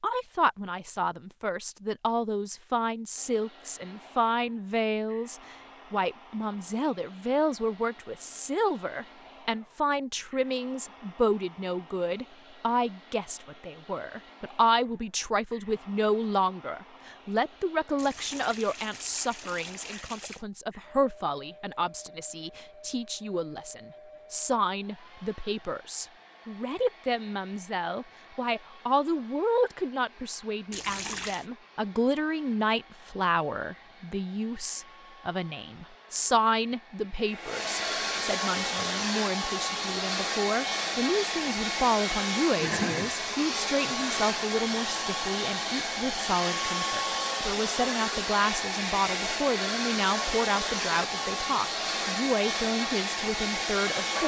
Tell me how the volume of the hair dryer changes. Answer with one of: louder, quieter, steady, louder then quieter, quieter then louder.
louder.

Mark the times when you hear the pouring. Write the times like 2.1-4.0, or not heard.
17.9-20.4, 30.7-31.4.